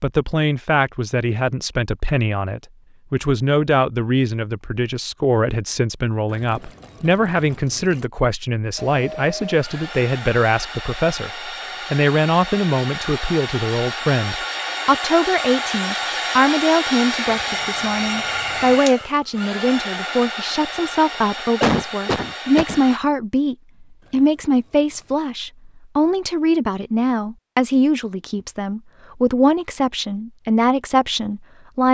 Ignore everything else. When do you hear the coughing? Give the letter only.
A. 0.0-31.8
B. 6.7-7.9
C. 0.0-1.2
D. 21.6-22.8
D.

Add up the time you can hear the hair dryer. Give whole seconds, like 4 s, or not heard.
14 s.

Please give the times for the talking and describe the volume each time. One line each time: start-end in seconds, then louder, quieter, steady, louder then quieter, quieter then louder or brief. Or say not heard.
0.0-31.8 steady.